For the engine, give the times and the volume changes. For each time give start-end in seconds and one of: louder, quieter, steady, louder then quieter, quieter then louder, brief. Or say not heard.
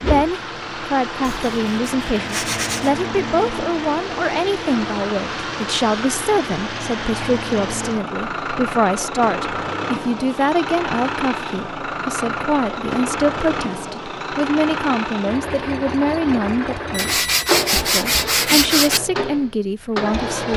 0.0-20.5 steady.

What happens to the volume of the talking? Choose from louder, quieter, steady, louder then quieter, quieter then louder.
steady.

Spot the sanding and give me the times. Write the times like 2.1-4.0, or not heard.
1.2-2.9, 16.9-19.0.